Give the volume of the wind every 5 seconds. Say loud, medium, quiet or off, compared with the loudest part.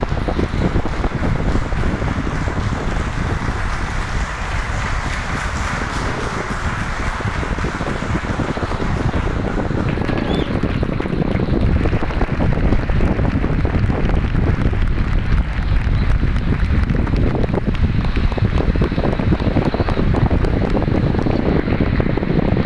medium, medium, loud, loud, loud.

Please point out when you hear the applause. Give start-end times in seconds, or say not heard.
0.0-22.6.